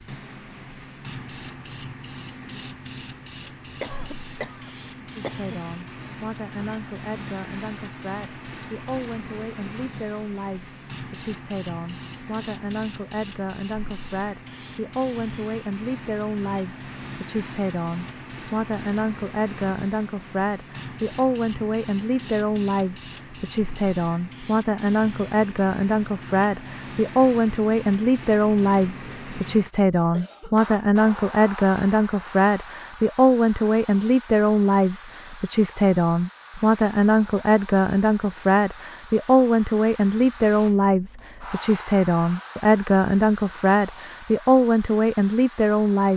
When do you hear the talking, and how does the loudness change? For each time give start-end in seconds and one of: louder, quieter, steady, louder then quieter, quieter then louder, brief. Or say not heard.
5.2-46.1 louder.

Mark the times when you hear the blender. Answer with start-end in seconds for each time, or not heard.
not heard.